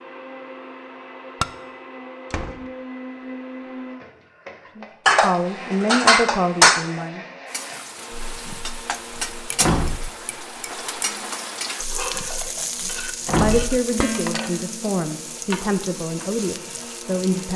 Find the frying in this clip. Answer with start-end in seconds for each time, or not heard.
7.5-17.5.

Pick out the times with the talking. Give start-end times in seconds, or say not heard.
4.8-7.2, 12.8-17.5.